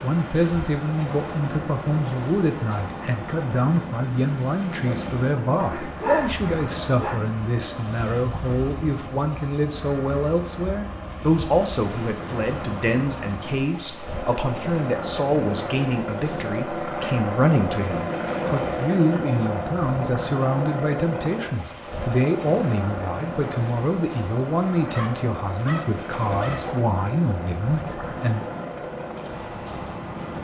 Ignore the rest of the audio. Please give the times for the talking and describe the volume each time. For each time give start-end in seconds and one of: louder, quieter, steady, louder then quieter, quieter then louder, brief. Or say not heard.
0.0-28.4 steady.